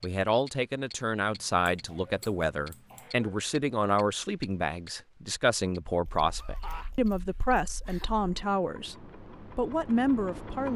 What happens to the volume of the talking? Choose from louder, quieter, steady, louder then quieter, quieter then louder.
steady.